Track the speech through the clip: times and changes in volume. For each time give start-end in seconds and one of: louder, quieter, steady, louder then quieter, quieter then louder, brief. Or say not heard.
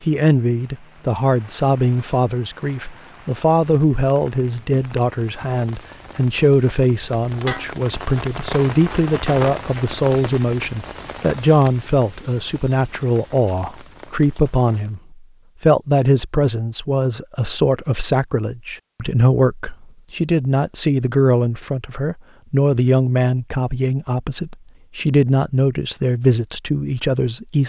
0.1-27.6 steady.